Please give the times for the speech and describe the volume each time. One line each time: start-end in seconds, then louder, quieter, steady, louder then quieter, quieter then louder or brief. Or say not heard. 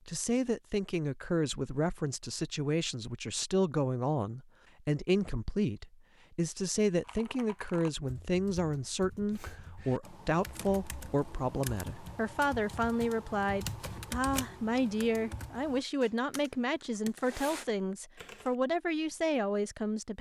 0.1-20.1 steady.